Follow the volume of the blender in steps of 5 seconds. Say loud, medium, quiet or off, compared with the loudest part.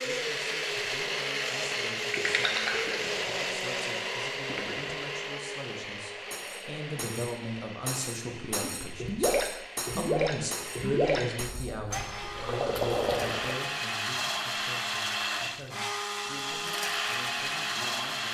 loud, medium, loud, loud.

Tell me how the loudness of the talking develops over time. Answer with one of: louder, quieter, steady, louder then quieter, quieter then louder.
louder then quieter.